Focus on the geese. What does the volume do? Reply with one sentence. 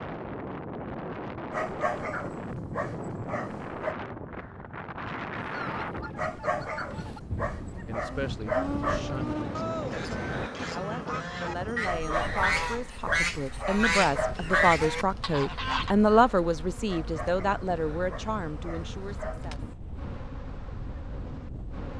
The volume of the geese goes up.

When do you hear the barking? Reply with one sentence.
You can hear the barking from 1.5 to 4.0 s, from 6.2 to 9.1 s, from 11.8 to 14.8 s and from 16.9 to 19.4 s.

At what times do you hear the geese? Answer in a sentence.
The geese can be heard from 5.4 to 15.9 s.